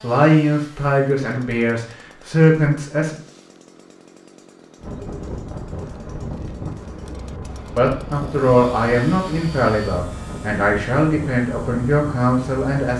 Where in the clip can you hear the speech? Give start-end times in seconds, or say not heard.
0.0-3.1, 7.8-12.9.